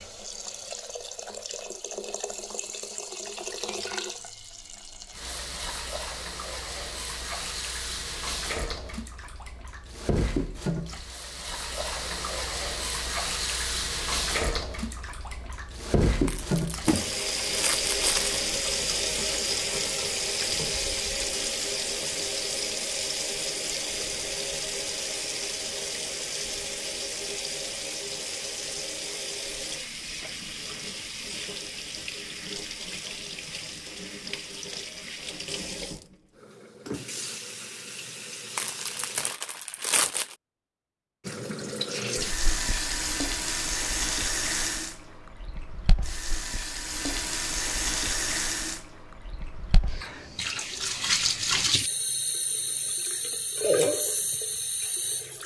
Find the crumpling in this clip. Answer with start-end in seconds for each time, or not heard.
16.2-18.4, 38.5-40.4.